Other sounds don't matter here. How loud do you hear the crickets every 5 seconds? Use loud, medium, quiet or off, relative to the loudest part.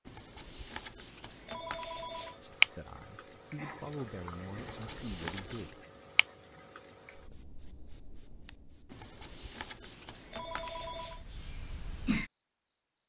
loud, medium, medium.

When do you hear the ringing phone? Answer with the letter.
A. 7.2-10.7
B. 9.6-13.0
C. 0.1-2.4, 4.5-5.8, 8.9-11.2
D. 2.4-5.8
C.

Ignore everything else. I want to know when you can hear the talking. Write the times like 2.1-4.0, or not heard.
2.4-5.8.